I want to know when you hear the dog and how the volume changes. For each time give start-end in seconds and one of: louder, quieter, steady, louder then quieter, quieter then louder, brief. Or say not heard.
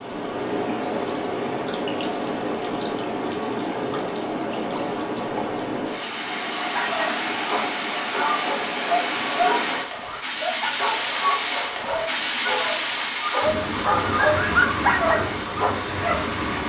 6.7-16.3 louder.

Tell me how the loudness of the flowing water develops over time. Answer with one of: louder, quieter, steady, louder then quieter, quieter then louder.
steady.